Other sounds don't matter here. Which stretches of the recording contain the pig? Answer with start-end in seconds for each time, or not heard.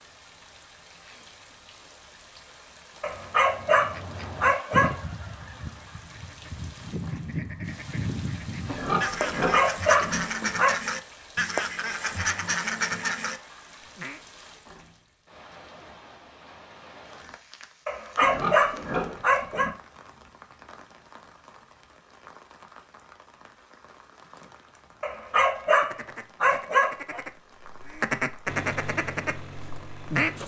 8.7-10.7, 18.2-19.8.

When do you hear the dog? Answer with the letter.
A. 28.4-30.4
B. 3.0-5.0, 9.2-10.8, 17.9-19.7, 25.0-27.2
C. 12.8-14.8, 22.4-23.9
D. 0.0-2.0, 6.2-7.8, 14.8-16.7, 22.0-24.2
B.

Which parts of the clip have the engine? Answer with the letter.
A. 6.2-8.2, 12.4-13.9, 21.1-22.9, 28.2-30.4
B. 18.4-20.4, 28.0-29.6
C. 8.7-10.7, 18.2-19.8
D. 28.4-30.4
D.